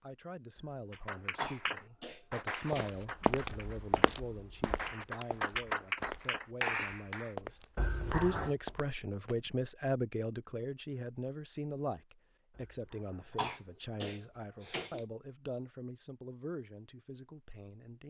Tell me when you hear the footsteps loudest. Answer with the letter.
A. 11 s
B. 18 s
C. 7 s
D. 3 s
D.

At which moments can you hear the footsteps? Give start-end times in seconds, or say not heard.
2.7-9.6.